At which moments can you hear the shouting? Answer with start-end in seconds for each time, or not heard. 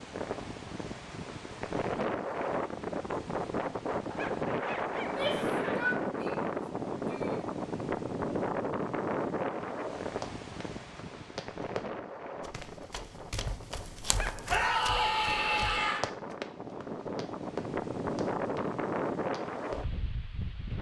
5.0-7.5, 14.4-16.0.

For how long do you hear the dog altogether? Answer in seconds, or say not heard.
4 s.